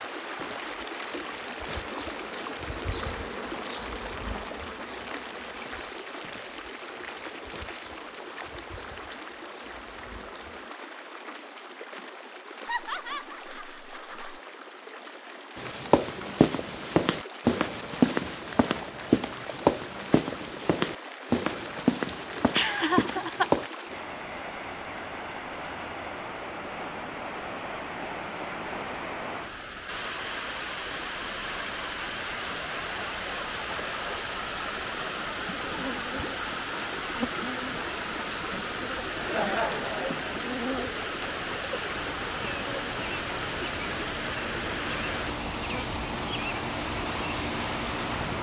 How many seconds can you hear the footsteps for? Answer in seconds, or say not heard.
8 s.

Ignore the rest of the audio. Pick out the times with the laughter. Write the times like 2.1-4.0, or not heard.
12.7-14.4, 22.5-23.4, 39.1-40.3.